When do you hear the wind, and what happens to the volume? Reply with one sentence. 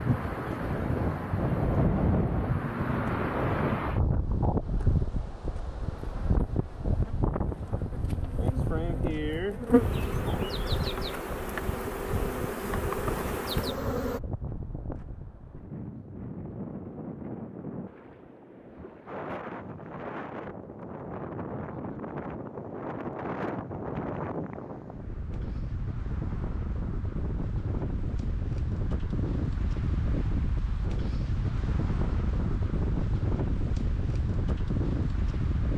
The wind can be heard from 0.0 to 35.7 s, getting quieter then louder.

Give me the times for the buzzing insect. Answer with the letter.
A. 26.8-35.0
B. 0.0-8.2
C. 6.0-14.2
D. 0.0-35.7
C.